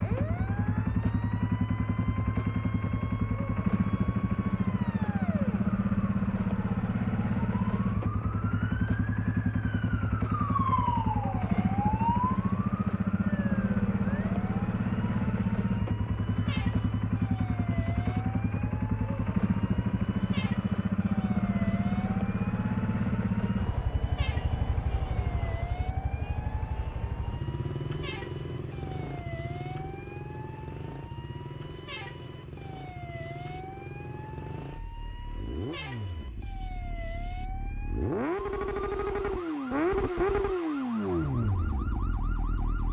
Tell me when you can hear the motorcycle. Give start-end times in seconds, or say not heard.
0.0-42.8.